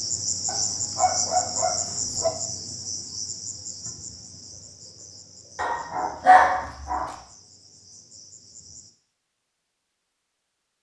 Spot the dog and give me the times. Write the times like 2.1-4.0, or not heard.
0.5-2.3, 5.5-7.2.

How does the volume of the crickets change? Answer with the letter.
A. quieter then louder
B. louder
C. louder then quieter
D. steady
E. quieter
E.